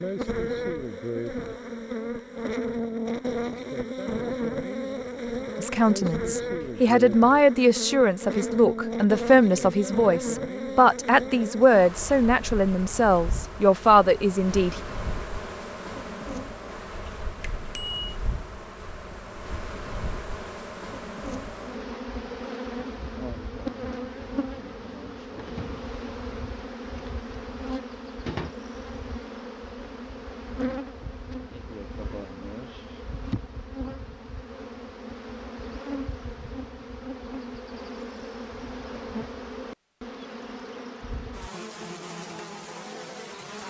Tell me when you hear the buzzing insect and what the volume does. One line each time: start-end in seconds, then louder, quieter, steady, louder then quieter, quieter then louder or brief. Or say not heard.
0.0-43.6 quieter.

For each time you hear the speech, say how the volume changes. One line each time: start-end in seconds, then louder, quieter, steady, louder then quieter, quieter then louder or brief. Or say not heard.
5.6-14.8 steady.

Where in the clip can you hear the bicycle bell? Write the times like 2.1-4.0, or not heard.
17.4-18.1.